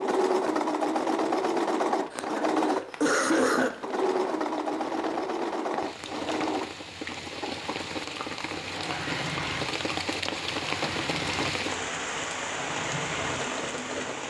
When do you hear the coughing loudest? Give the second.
3 s.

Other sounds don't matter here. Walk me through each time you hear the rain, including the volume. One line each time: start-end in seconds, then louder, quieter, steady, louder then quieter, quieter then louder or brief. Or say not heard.
0.0-14.2 louder.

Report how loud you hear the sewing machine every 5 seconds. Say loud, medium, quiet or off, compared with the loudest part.
loud, medium, medium.